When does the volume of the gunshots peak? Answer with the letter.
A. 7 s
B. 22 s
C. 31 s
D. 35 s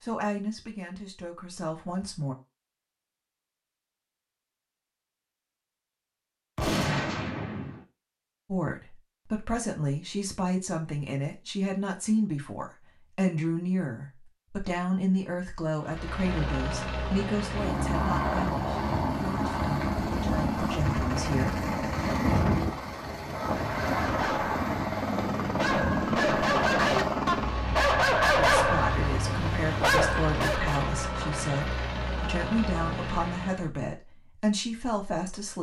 A.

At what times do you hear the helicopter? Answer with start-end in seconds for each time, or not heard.
15.8-33.7.